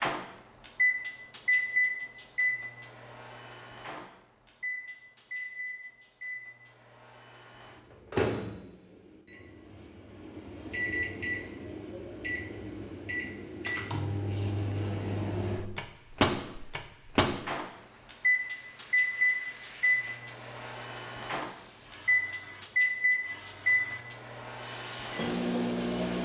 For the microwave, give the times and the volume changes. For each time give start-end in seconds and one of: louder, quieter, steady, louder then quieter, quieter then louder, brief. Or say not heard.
0.0-26.2 quieter then louder.